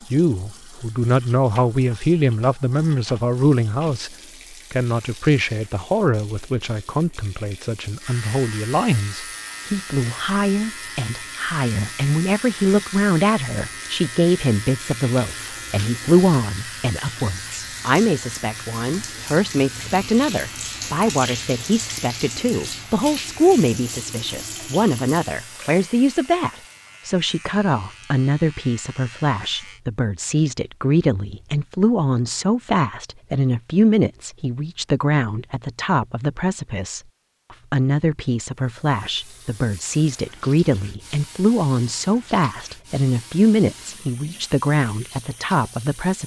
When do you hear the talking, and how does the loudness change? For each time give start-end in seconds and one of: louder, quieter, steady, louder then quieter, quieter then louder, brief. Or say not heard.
0.1-46.2 steady.